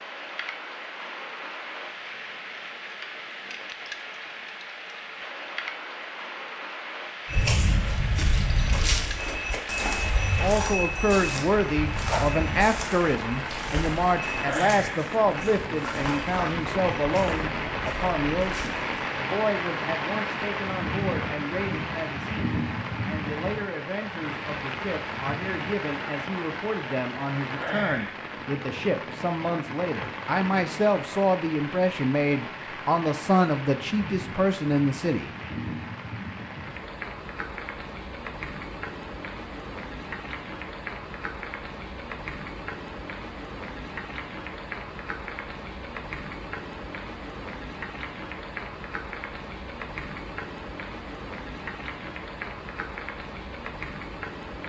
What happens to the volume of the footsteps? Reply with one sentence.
The loudness of the footsteps goes down.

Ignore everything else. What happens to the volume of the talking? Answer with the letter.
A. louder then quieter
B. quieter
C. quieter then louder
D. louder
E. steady
C.